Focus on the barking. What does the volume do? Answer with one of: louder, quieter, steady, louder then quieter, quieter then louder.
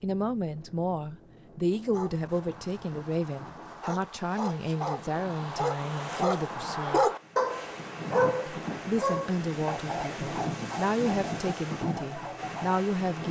louder then quieter.